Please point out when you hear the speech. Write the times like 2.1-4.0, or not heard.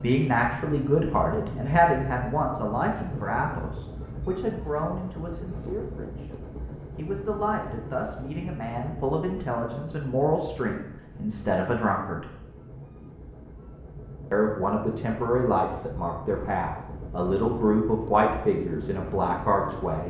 0.0-12.2, 14.3-20.0.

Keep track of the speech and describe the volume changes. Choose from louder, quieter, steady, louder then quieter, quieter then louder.
quieter then louder.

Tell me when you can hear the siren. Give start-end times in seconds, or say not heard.
not heard.